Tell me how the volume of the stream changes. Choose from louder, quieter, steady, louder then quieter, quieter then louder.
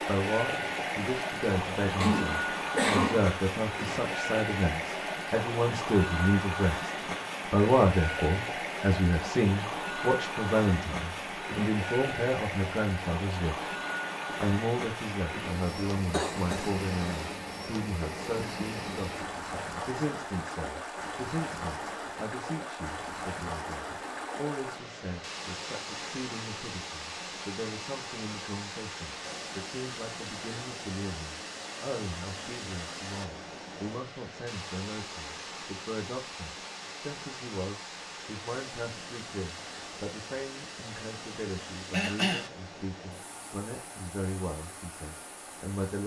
quieter.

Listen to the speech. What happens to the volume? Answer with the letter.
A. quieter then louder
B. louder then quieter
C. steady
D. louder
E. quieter
E.